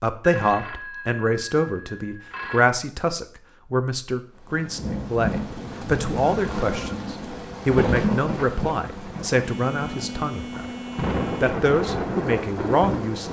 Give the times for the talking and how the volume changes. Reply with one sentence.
The talking can be heard from 0.0 to 10.7 s, at a steady volume; and briefly from 11.4 to 13.2 s.